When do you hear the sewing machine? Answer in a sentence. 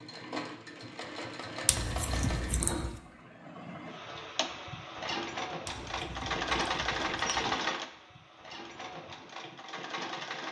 You can hear the sewing machine from 0.0 to 10.4 s.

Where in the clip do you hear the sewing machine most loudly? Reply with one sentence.
The volume of the sewing machine peaks at 7 seconds.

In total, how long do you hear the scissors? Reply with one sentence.
You can hear the scissors for 3 seconds altogether.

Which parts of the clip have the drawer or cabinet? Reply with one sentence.
You can't hear the drawer or cabinet here.